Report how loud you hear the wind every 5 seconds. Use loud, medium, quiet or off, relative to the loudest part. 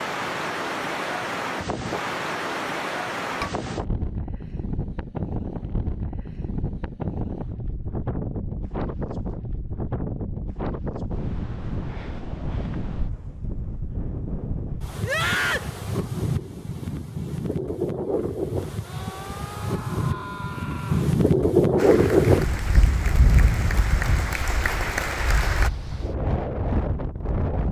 medium, medium, medium, medium, loud, medium.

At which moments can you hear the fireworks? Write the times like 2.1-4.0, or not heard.
not heard.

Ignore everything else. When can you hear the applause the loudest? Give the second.
25 s.